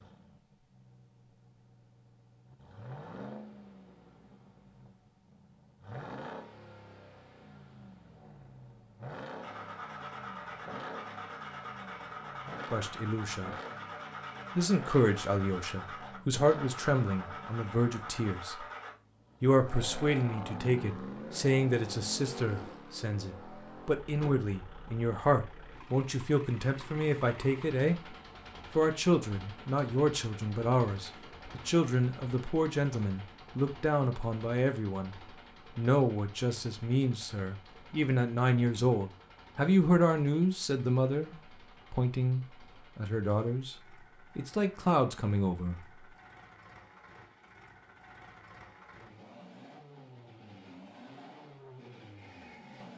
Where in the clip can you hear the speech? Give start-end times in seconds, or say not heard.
12.7-13.6, 14.6-18.6, 19.4-28.1, 28.8-35.1, 35.8-43.8, 44.4-45.8.